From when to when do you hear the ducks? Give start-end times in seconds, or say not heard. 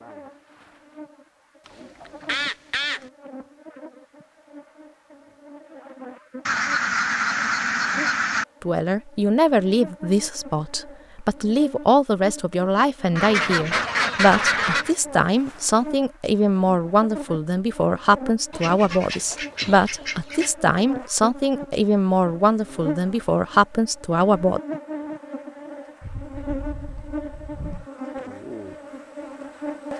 1.8-3.0, 6.5-8.4, 13.2-14.9, 18.5-20.5, 26.0-27.9.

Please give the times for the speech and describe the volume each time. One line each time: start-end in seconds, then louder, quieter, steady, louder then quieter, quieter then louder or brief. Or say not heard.
8.6-24.6 steady.